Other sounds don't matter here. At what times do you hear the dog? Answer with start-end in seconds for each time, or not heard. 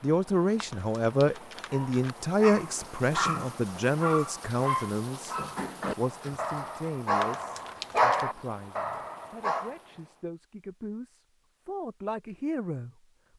1.7-9.7.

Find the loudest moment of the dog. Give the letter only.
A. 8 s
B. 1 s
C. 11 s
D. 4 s
A.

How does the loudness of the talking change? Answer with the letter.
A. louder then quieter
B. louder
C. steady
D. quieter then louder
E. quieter
D.